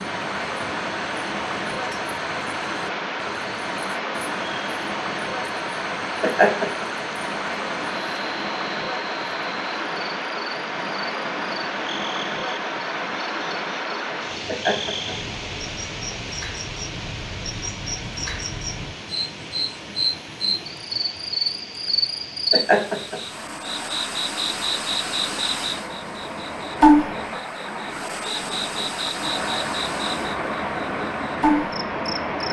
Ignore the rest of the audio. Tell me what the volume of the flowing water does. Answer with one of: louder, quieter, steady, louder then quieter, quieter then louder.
quieter then louder.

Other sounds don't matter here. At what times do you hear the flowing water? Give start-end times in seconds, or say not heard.
0.0-32.4.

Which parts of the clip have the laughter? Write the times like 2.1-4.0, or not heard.
6.2-6.8, 14.4-15.2, 22.5-23.1.